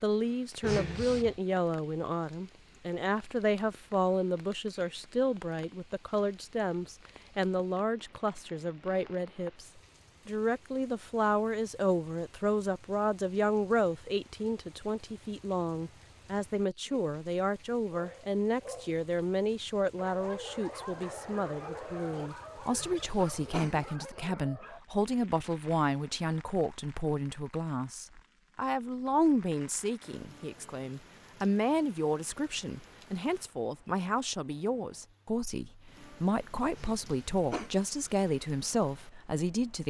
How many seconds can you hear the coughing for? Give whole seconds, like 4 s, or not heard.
3 s.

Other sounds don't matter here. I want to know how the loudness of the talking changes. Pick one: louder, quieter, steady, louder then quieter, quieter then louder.
steady.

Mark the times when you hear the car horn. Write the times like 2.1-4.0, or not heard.
not heard.